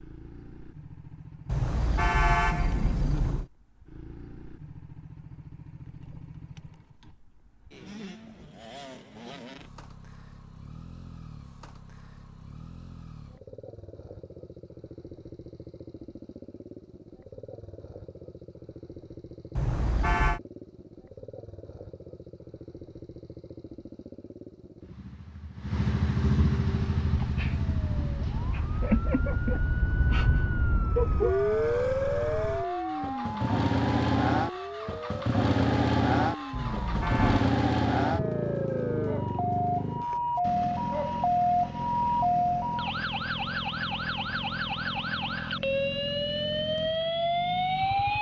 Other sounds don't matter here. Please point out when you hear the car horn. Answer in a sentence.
The car horn can be heard from 1.4 to 3.5 s, from 19.6 to 20.4 s and from 36.5 to 37.5 s.